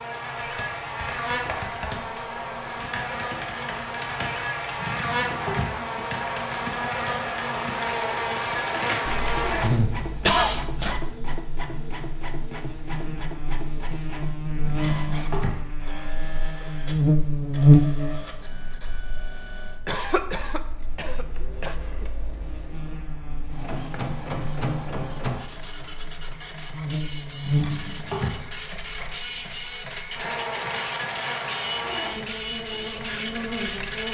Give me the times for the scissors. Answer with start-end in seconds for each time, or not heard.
not heard.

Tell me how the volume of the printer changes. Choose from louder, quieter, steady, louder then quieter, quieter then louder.
quieter then louder.